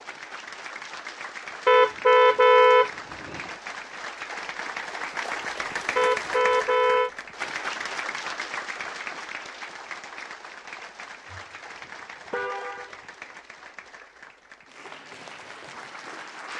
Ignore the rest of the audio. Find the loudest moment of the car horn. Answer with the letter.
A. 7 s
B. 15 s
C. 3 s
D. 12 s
C.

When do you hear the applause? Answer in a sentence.
You can hear the applause from 0.0 to 16.5 s.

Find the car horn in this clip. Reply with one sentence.
You can hear the car horn from 1.6 to 3.4 s, from 6.0 to 7.1 s and from 11.3 to 12.9 s.